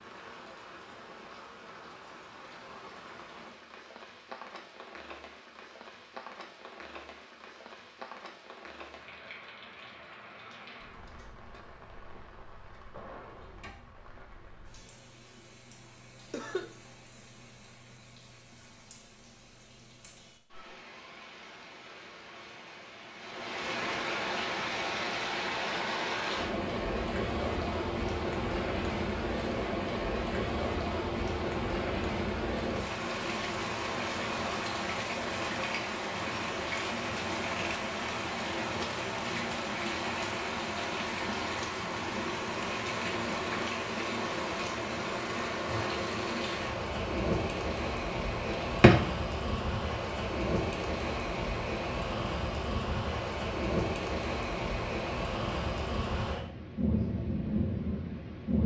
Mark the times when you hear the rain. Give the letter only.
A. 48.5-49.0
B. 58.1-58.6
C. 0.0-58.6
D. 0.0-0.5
C.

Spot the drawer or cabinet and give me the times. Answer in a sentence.
You can hear the drawer or cabinet from 48.5 to 49.0 s.